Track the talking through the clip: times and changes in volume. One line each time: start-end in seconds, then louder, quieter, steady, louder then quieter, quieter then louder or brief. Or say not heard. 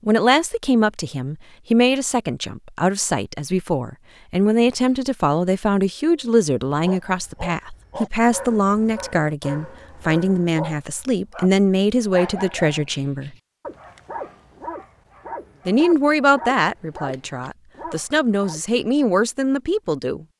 0.1-13.3 steady
15.7-20.2 quieter then louder.